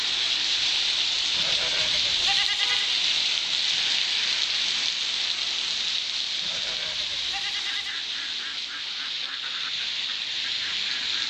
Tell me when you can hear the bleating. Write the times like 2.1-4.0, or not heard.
1.4-3.0, 6.4-8.0.